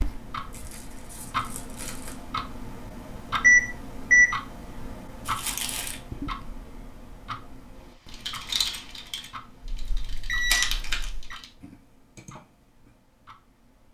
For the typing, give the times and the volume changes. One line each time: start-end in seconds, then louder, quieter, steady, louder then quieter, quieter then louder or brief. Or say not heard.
7.8-12.9 quieter.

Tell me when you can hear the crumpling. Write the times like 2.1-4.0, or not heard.
0.5-2.2, 5.2-6.0, 10.5-11.1.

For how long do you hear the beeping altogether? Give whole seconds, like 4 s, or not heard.
3 s.